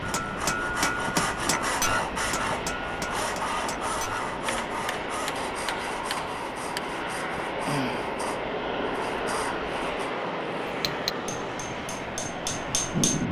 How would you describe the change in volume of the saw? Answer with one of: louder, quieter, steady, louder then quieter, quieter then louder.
quieter.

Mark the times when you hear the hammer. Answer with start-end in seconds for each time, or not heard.
0.0-6.8, 10.7-13.2.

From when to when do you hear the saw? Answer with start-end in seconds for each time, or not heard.
0.0-10.1.